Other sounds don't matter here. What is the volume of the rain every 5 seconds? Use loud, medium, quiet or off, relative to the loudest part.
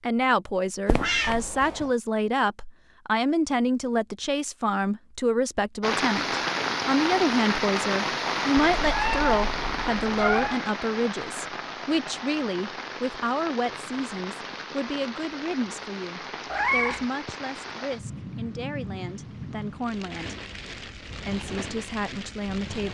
off, loud, medium, medium, medium.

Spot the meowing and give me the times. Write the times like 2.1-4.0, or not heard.
0.8-1.4, 8.7-10.6, 16.5-17.1.